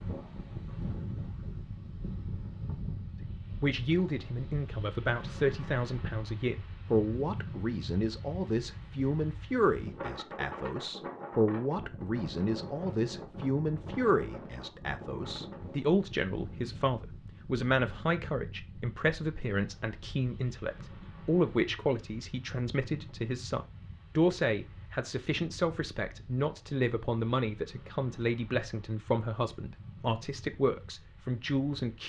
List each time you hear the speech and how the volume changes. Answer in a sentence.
The speech can be heard from 3.2 to 32.0 s, at a steady volume.